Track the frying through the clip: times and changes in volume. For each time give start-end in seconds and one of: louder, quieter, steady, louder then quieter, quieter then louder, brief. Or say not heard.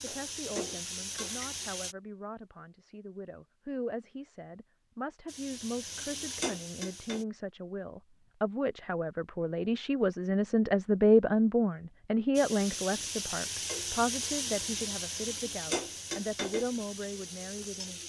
0.0-1.9 brief
5.2-7.2 brief
12.3-18.0 quieter.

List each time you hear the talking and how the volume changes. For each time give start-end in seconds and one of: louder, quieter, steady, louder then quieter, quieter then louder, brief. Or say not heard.
0.0-18.0 louder then quieter.